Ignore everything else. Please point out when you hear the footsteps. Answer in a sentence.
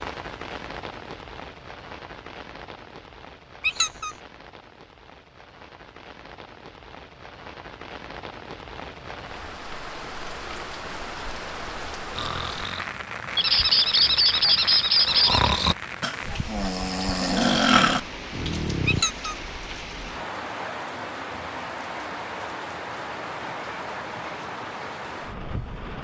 The footsteps can't be heard in this clip.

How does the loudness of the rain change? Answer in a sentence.
The volume of the rain goes up.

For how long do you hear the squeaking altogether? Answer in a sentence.
The squeaking can be heard for 3 seconds in total.